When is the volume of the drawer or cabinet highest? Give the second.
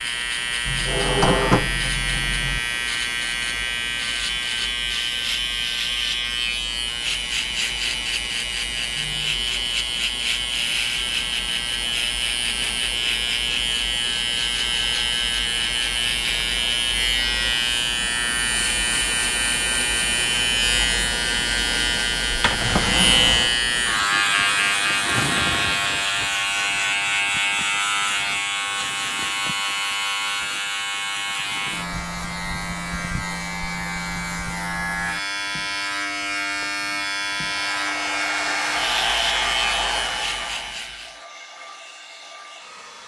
1 s.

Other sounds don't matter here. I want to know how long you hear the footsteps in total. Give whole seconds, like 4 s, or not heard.
not heard.